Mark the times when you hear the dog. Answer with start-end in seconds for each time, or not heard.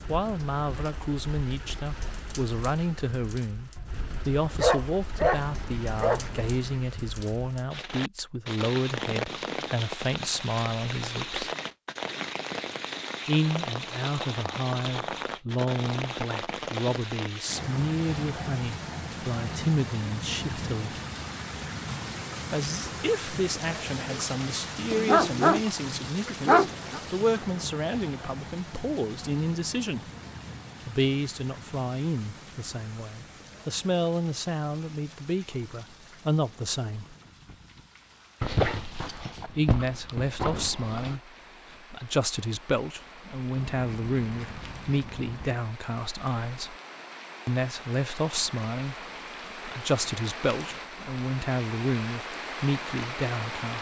3.8-6.3, 24.9-27.0, 38.4-41.1.